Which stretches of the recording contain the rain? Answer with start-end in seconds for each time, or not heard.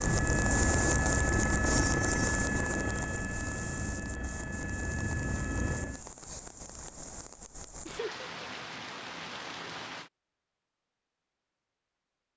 0.0-10.1.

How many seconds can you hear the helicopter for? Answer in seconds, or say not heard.
6 s.